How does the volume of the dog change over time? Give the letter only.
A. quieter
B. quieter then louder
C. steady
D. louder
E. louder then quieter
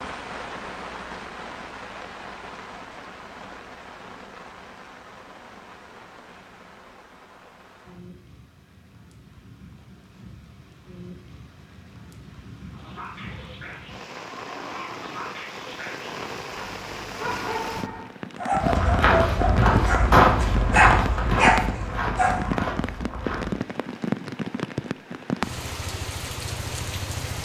D.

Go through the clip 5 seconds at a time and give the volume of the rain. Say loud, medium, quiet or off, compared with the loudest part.
medium, quiet, quiet, loud, loud, loud.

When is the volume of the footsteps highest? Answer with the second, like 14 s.
20 s.